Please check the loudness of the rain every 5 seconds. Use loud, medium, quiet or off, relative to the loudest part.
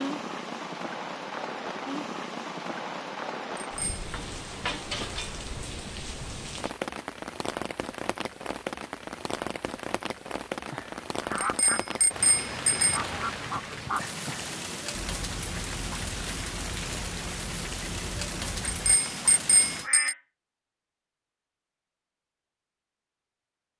loud, loud, loud, loud, off.